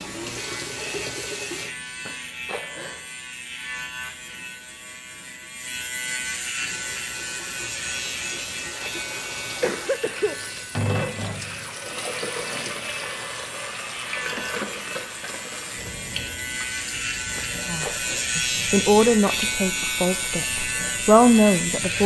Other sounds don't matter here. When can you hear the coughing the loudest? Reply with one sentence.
The volume of the coughing peaks at 10 seconds.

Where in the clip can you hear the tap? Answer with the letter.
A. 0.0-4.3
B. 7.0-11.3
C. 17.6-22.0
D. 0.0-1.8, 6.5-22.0
D.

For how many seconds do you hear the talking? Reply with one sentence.
You can hear the talking for 4 seconds altogether.